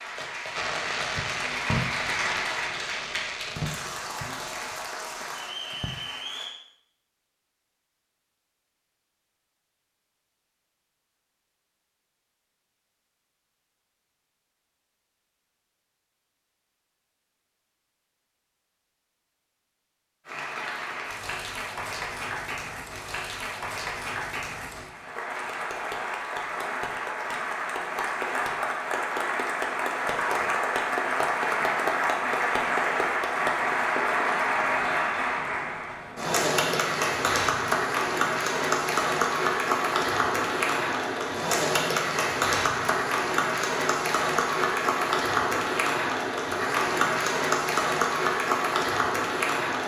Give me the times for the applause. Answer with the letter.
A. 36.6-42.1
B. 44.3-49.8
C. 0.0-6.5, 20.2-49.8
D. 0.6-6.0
C.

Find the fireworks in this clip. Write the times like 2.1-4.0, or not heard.
0.6-6.0.